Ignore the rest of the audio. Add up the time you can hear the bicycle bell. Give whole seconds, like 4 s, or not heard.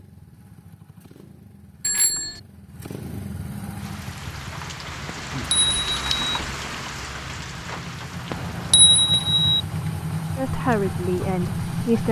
3 s.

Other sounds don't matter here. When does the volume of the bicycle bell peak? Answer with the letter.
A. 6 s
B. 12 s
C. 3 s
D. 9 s
D.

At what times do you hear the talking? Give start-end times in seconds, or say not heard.
10.3-12.0.